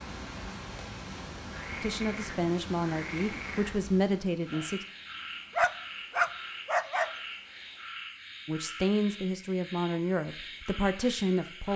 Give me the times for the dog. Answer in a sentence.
You can hear the dog from 5.5 to 7.1 s.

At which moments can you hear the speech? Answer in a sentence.
The speech can be heard from 1.8 to 4.8 s and from 8.4 to 11.7 s.